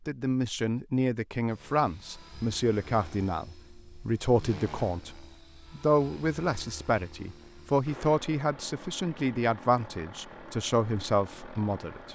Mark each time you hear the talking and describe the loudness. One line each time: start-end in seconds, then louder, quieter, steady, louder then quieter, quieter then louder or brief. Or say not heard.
0.1-12.1 steady.